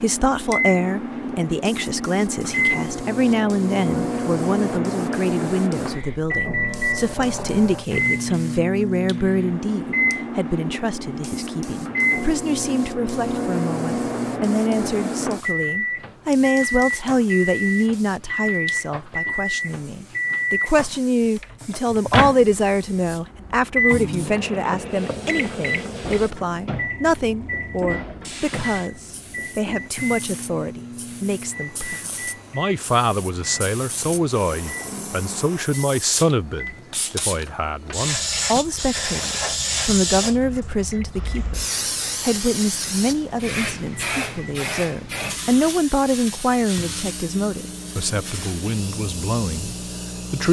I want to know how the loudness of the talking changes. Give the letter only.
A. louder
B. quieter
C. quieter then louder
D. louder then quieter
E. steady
E.